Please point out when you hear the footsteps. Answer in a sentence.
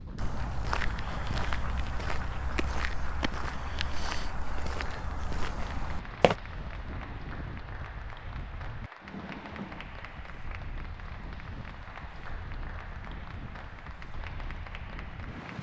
You can hear the footsteps from 0.1 to 6.3 s.